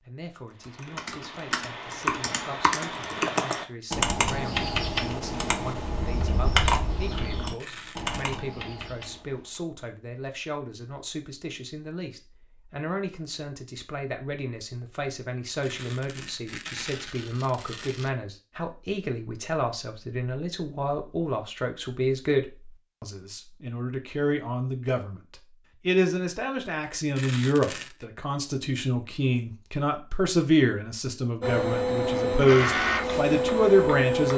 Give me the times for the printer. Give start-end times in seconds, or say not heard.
31.4-34.3.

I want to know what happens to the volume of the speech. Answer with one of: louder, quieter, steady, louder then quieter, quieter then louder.
louder.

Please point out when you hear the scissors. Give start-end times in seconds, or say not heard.
not heard.